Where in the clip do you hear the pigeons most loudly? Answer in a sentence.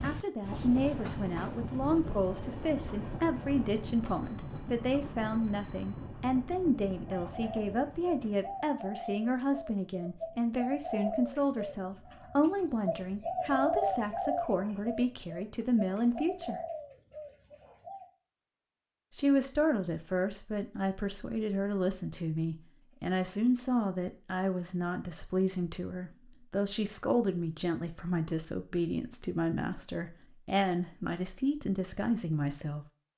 The volume of the pigeons peaks at 14 seconds.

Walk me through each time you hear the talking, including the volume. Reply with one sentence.
You can hear the talking from 0.0 to 16.6 s, at a steady volume; and from 19.1 to 32.9 s, at a steady volume.